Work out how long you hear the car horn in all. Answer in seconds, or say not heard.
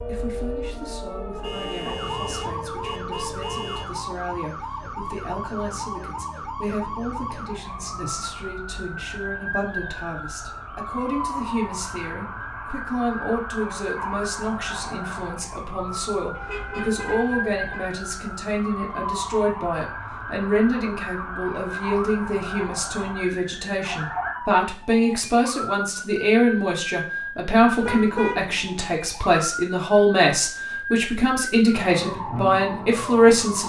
5 s.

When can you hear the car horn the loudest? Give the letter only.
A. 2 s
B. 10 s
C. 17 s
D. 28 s
D.